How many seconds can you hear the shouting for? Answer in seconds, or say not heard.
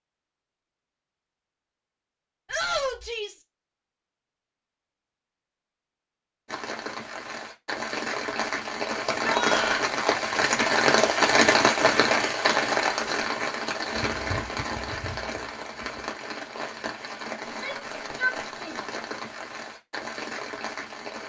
3 s.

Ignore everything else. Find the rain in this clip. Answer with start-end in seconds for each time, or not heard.
6.5-21.2.